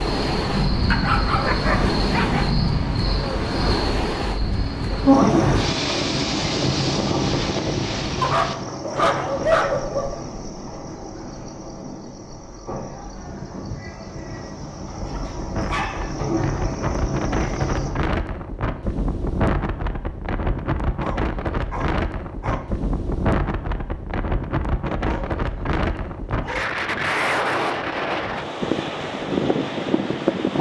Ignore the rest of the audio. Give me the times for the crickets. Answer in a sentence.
The crickets can be heard from 0.0 to 17.9 s.